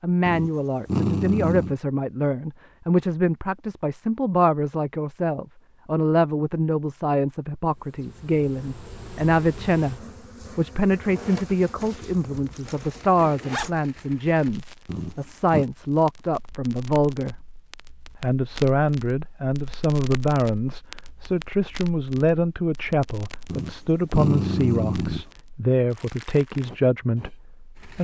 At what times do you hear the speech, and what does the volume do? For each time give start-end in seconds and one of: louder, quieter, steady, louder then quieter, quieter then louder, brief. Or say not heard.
0.0-9.9 steady
10.6-17.4 steady
18.2-28.0 steady.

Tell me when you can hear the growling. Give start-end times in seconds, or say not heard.
0.2-1.8, 14.8-15.7, 23.4-25.2.